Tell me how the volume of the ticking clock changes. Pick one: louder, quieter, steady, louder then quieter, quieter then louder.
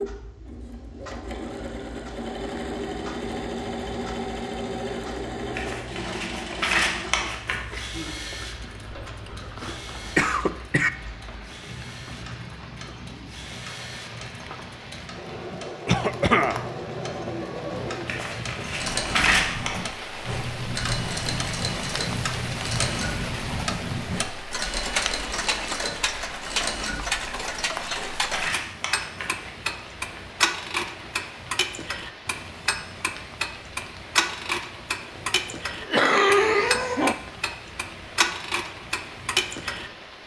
louder.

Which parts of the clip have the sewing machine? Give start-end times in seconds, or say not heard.
0.0-28.3.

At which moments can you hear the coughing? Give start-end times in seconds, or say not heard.
8.9-10.9, 15.8-16.6, 35.1-37.1.